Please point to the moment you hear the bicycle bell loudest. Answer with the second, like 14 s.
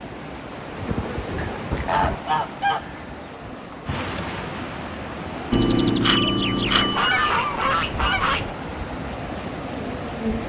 6 s.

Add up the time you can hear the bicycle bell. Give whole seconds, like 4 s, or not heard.
2 s.